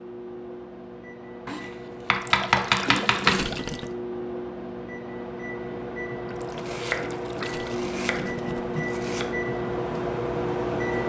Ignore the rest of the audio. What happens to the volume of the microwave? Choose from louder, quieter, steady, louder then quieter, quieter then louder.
louder.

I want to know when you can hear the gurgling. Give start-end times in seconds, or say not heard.
2.1-3.9, 6.2-8.9.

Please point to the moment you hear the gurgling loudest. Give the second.
3 s.